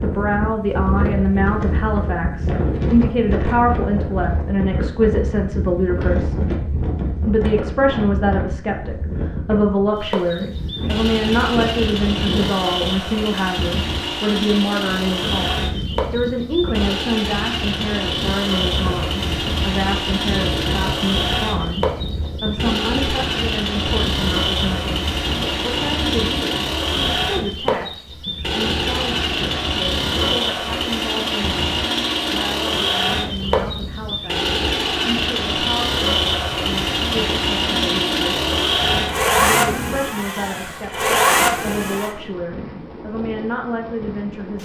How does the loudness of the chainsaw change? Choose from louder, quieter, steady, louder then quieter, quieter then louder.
louder.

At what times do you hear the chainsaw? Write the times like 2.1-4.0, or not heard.
9.9-42.1.